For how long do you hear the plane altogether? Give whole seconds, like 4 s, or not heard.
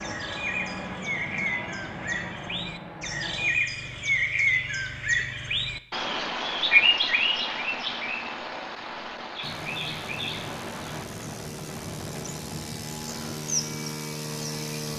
9 s.